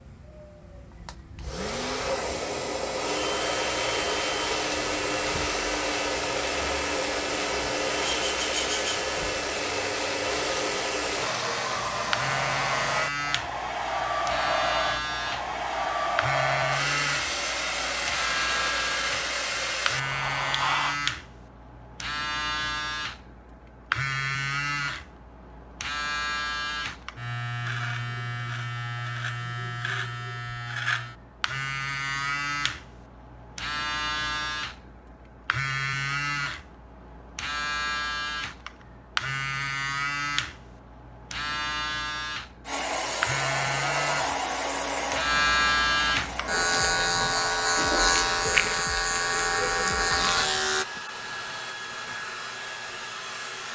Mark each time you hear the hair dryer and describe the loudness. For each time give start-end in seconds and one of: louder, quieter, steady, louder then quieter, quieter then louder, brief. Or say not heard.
0.0-21.0 steady
42.6-53.7 quieter.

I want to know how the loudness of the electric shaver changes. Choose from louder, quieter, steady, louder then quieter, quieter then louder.
louder.